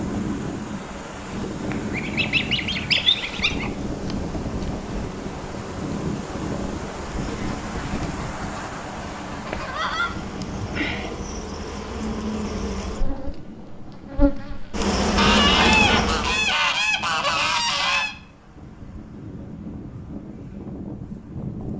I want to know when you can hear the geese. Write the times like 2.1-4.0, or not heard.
1.7-3.7, 7.2-10.2, 15.2-18.1.